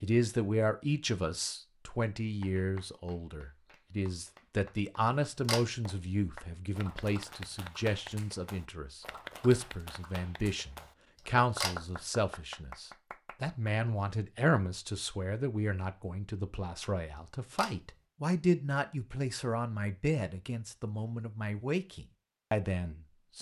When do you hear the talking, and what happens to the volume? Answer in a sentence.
The talking can be heard from 0.0 to 23.3 s, at a steady volume.